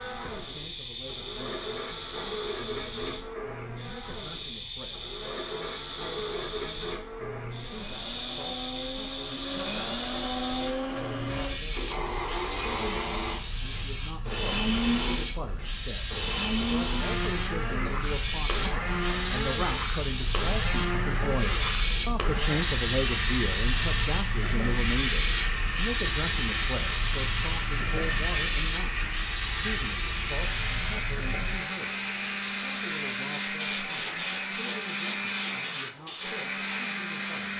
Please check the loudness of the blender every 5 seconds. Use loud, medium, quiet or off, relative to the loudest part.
medium, medium, loud, loud, loud, loud, loud, loud.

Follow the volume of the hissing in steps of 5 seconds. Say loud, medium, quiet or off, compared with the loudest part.
medium, medium, medium, loud, loud, loud, medium, medium.